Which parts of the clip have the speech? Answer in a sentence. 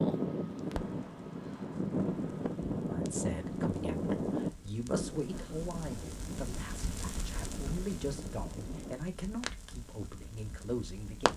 The speech can be heard from 2.9 to 11.3 s.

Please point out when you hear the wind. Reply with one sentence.
You can hear the wind from 0.0 to 8.9 s.